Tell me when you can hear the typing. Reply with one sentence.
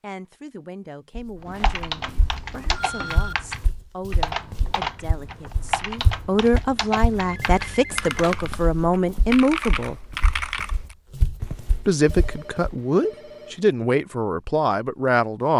You can hear the typing from 1.4 to 10.9 s.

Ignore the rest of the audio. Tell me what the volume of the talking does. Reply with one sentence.
The volume of the talking goes up.